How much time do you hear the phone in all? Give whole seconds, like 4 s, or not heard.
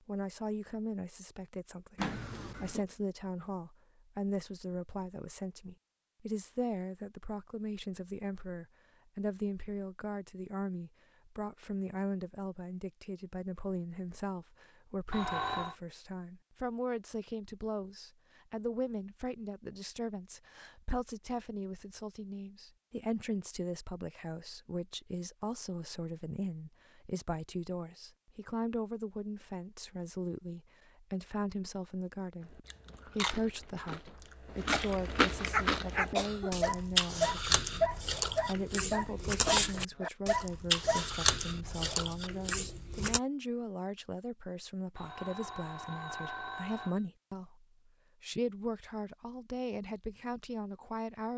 3 s.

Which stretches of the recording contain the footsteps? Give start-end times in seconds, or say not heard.
not heard.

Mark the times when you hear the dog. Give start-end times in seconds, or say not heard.
35.5-41.0.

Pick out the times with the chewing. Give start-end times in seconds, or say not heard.
32.5-43.2.